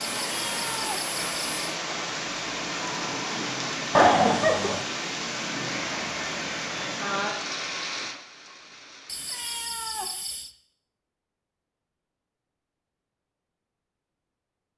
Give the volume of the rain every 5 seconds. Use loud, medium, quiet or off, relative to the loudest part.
loud, loud, off.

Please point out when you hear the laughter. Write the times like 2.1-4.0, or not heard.
3.9-4.8.